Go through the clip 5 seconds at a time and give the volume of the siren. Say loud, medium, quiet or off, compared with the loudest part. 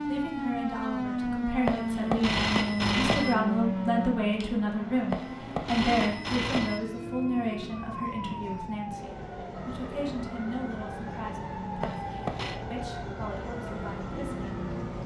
loud, medium, medium.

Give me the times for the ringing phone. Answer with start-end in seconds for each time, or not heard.
1.6-3.4, 5.1-6.8, 11.8-12.6.